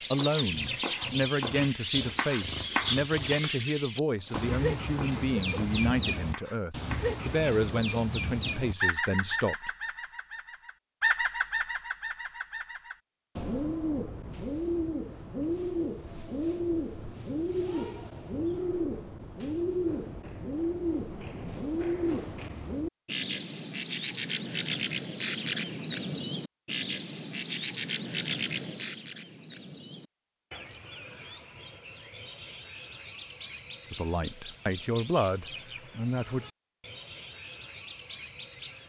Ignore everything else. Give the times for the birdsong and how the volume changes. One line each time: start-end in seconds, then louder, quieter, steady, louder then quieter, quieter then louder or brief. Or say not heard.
0.0-38.8 quieter.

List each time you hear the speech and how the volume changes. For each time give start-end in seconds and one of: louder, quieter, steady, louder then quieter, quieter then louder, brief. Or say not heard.
0.1-9.7 steady
33.9-36.5 brief.